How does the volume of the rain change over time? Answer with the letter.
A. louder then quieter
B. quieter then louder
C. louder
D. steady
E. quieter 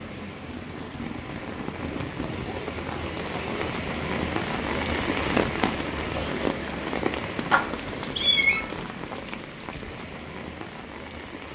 A.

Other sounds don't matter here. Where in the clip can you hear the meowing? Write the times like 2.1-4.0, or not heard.
7.5-8.7.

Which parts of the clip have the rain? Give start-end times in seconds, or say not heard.
0.0-11.4.